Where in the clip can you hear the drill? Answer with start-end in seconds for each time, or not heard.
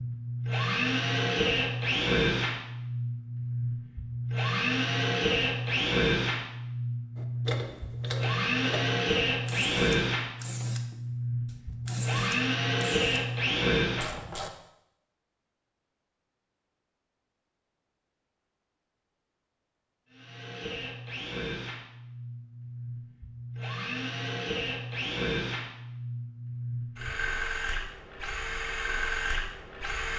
0.0-14.2, 20.1-30.1.